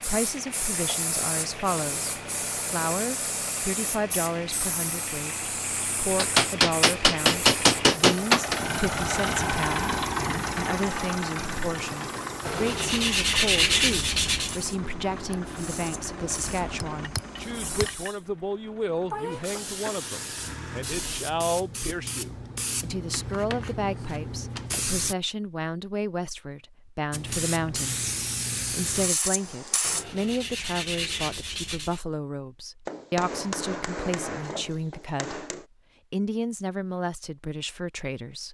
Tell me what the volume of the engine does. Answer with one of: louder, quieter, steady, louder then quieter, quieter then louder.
louder then quieter.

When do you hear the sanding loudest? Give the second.
14 s.